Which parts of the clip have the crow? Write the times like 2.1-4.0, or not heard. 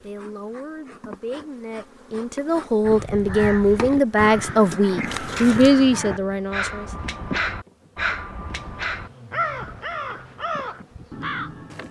2.9-11.8.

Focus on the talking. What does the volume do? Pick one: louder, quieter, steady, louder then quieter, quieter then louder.
louder.